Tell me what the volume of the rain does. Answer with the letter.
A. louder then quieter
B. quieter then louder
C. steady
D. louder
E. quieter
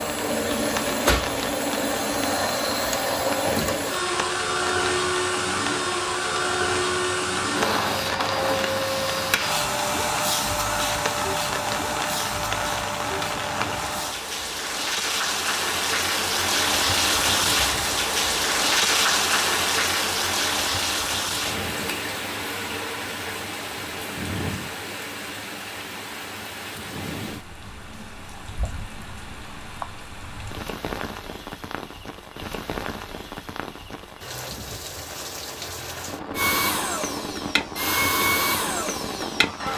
A.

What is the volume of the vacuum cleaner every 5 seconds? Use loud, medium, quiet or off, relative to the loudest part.
loud, loud, loud, off, off, off, off, loud.